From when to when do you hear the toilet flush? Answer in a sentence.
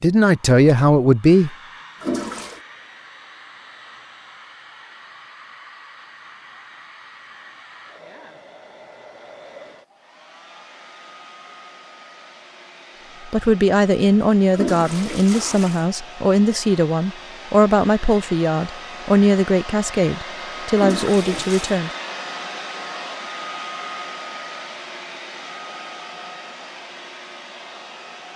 You can hear the toilet flush from 2.0 to 2.6 s, from 14.5 to 15.8 s and from 20.8 to 21.8 s.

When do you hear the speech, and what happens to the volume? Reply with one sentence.
The speech can be heard briefly from 0.0 to 1.6 s; and from 13.2 to 21.9 s, at a steady volume.